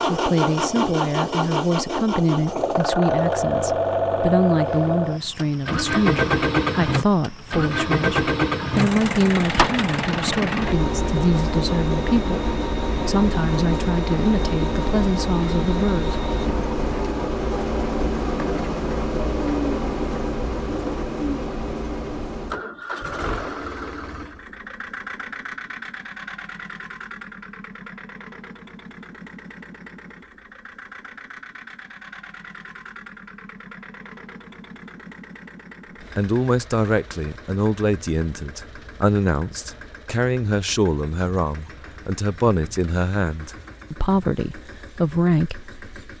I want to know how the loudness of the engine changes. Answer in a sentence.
The loudness of the engine goes down.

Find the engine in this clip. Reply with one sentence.
The engine can be heard from 0.0 to 46.1 s.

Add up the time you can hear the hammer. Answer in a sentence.
You can't hear the hammer here.